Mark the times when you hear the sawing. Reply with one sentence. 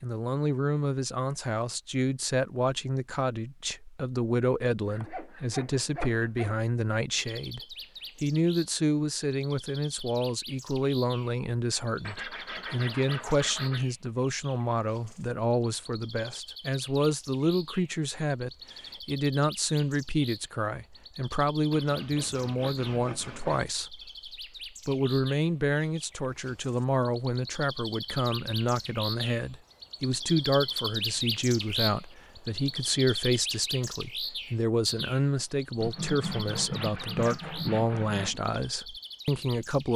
You can hear the sawing from 4.8 to 6.6 s, from 12.0 to 13.8 s, from 21.7 to 23.6 s and from 35.8 to 38.4 s.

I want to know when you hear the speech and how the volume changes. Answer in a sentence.
The speech can be heard from 0.0 to 39.9 s, at a steady volume.